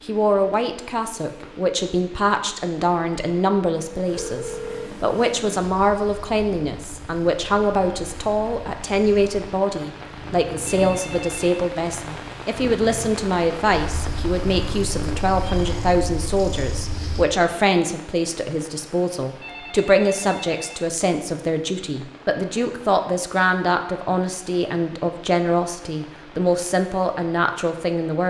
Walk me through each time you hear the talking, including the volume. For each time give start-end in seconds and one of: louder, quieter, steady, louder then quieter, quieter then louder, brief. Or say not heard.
0.1-28.2 steady.